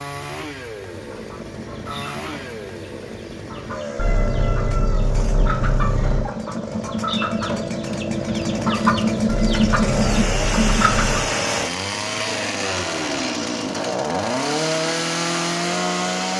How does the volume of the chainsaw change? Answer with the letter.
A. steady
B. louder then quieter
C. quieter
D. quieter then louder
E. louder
E.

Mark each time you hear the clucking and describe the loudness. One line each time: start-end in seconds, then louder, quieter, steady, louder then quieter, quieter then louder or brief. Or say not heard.
0.8-11.2 louder.